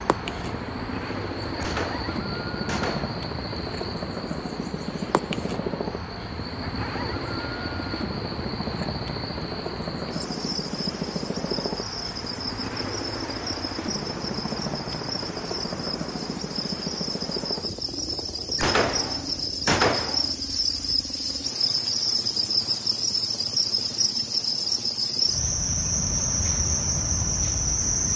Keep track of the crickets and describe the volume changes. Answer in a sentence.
The loudness of the crickets goes up.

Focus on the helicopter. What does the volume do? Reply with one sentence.
The loudness of the helicopter goes down.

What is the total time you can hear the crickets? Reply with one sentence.
You can hear the crickets for 28 seconds altogether.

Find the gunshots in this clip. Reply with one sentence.
The gunshots can be heard from 1.6 to 3.2 s and from 18.6 to 20.4 s.